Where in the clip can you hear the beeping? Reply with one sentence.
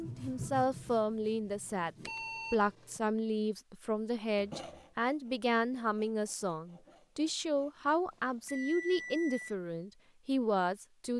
The beeping can be heard from 2.0 to 3.0 s and from 8.1 to 9.6 s.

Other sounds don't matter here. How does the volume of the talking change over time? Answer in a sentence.
The volume of the talking stays about the same.